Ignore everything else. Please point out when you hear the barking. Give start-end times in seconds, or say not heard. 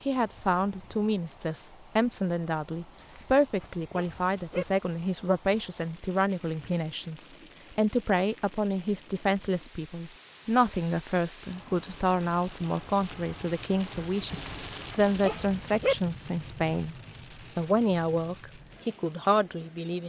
3.0-4.7, 14.2-15.9.